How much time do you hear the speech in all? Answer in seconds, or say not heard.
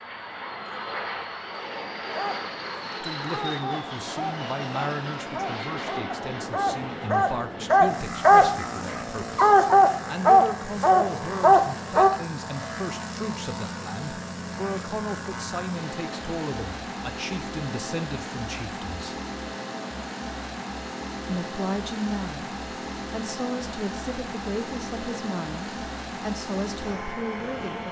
23 s.